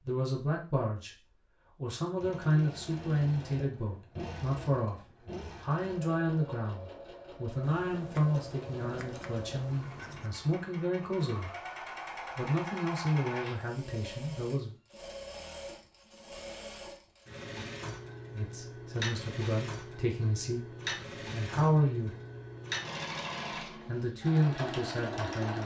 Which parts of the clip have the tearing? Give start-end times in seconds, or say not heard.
not heard.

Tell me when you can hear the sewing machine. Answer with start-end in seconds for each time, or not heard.
2.0-25.6.